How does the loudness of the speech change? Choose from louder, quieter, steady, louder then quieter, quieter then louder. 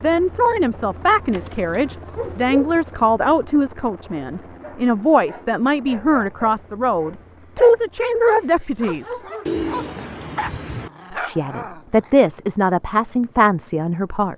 steady.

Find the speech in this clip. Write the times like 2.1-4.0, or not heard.
0.0-9.2, 11.1-14.3.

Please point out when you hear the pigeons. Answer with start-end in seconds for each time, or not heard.
1.2-2.8, 9.4-10.9.